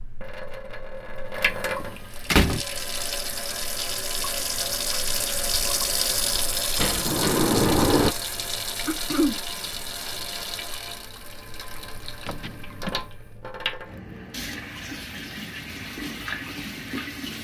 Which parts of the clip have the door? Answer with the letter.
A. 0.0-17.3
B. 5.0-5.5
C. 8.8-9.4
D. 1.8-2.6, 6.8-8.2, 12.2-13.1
D.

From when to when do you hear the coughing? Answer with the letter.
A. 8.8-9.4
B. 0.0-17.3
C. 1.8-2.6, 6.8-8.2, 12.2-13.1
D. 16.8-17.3
A.